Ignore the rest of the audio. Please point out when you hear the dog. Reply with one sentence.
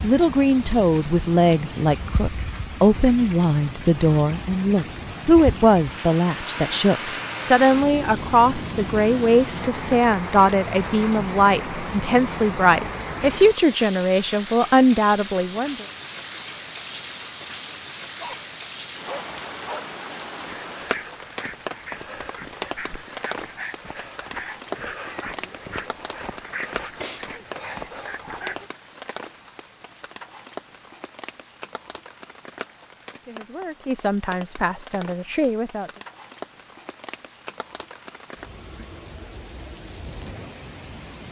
You can hear the dog from 18.2 to 28.7 s.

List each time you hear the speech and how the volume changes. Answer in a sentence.
You can hear the speech from 0.0 to 15.8 s, at a steady volume; and briefly from 33.2 to 35.9 s.